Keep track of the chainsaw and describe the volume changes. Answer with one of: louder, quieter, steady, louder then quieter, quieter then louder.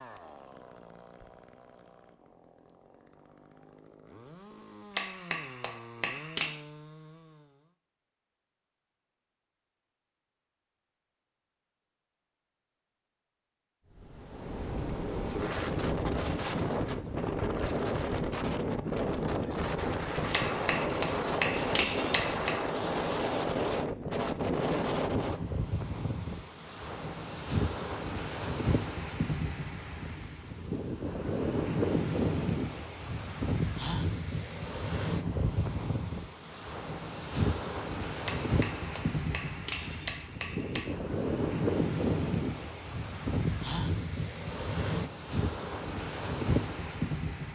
quieter then louder.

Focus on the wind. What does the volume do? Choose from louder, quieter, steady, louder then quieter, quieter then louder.
steady.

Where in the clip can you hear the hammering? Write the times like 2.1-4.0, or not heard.
5.0-6.5, 20.3-22.6, 38.2-41.0.